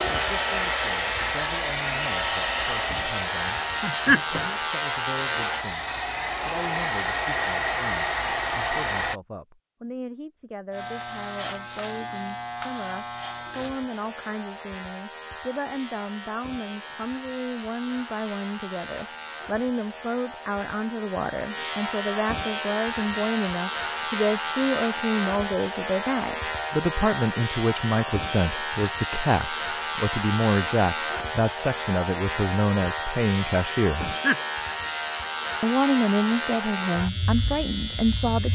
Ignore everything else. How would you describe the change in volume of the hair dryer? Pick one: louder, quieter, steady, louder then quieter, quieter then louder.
quieter then louder.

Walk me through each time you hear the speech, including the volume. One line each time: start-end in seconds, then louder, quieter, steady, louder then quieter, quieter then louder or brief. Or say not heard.
0.0-34.1 louder
35.6-38.5 brief.